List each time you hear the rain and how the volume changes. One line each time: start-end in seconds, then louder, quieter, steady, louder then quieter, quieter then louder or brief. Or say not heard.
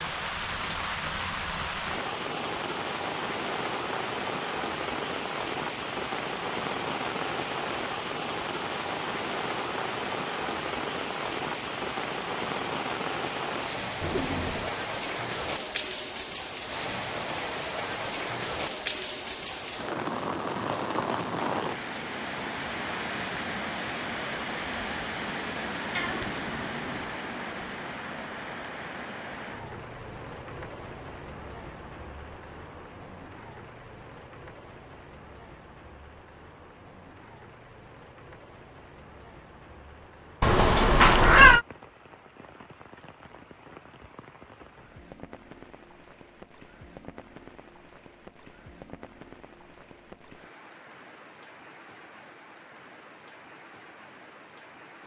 0.0-55.0 quieter.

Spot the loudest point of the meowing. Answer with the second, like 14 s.
41 s.